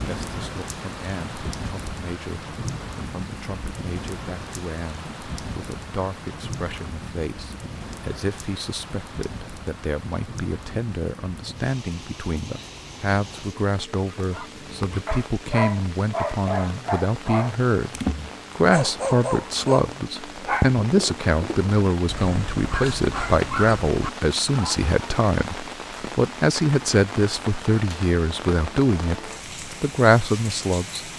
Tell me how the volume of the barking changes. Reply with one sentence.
The loudness of the barking stays about the same.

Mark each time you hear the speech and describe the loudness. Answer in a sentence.
The speech can be heard from 0.1 to 31.0 s, getting louder.